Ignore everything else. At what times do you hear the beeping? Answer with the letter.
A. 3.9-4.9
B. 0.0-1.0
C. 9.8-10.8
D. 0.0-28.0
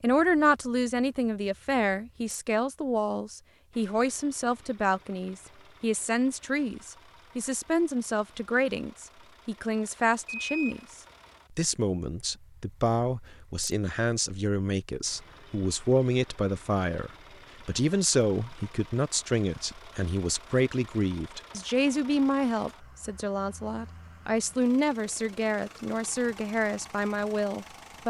C.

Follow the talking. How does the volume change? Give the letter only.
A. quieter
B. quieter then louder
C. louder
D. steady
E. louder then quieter
D.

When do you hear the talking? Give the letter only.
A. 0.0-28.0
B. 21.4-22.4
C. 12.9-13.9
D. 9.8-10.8
A.